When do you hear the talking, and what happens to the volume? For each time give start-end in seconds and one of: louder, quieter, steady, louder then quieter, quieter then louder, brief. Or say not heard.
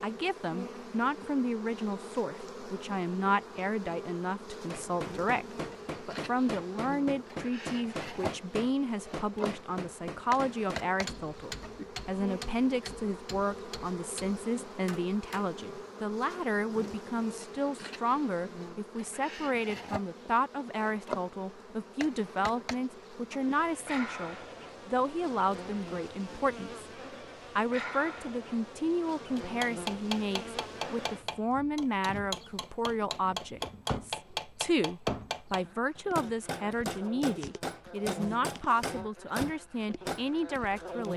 0.0-26.9 steady
27.6-41.1 steady.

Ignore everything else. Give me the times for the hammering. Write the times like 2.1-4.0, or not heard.
4.7-15.6, 29.4-40.3.